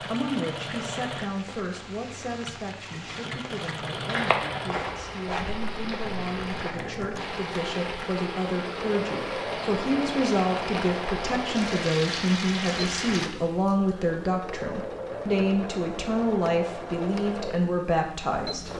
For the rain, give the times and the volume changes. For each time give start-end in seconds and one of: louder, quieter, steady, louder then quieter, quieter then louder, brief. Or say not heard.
0.0-13.3 louder.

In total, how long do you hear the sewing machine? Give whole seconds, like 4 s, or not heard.
19 s.